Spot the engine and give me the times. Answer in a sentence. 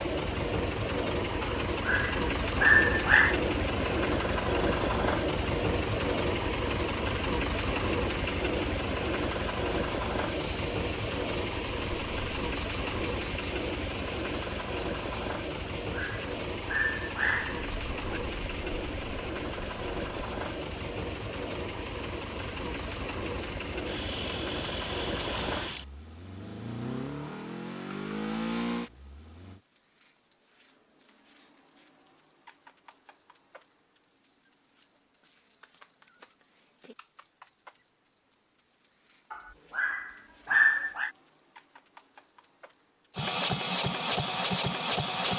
The engine can be heard from 0.0 to 29.6 s and from 43.1 to 45.3 s.